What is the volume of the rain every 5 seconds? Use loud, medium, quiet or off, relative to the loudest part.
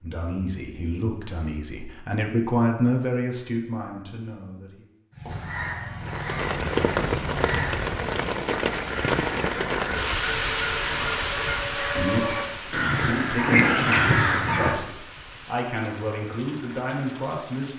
off, loud, loud, quiet.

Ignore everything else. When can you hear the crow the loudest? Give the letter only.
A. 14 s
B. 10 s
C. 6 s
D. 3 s
A.